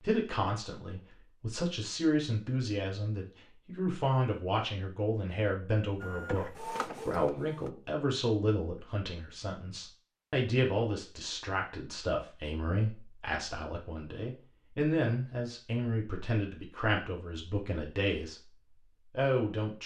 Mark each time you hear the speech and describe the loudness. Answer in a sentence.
You can hear the speech from 0.0 to 19.8 s, at a steady volume.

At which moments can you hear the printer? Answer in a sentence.
You can hear the printer from 6.0 to 7.8 s.